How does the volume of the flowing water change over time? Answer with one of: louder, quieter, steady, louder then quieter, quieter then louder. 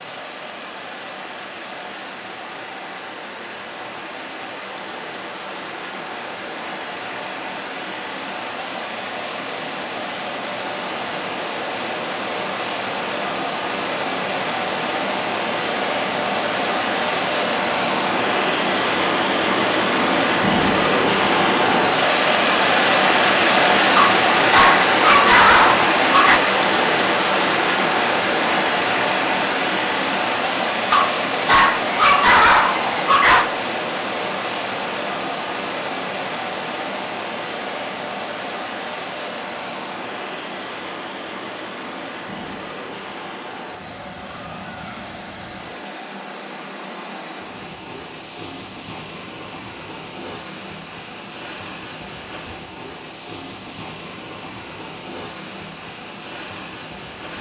louder then quieter.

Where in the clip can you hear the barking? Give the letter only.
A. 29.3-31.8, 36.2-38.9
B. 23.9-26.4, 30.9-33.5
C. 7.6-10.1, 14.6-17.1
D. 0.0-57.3
B.